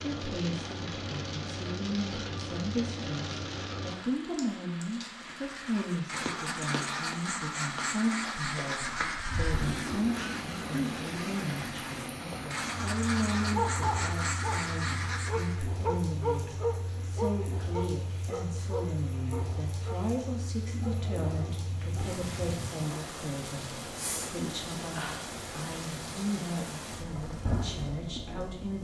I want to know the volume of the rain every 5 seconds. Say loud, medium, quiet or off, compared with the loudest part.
loud, loud, loud, medium, loud, loud.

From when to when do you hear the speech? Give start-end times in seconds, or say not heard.
0.0-28.7.